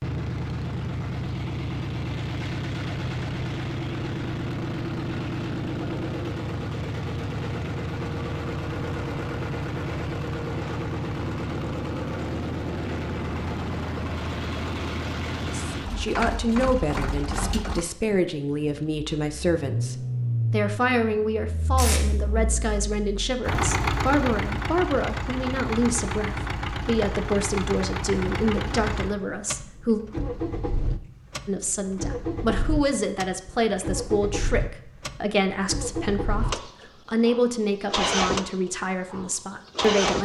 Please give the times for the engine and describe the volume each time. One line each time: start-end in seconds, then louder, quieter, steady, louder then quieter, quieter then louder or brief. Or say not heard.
0.0-40.2 steady.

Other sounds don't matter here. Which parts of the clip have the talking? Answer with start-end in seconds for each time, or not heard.
15.4-30.0, 31.4-40.2.